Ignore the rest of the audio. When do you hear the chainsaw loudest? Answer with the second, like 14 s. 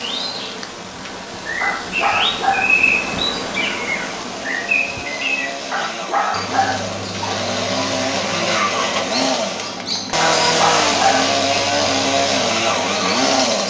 11 s.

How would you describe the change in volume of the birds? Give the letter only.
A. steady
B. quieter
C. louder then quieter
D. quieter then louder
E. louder
B.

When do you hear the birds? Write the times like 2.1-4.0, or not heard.
0.0-13.6.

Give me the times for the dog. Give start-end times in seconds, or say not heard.
1.6-2.8, 5.7-6.9, 10.2-11.3.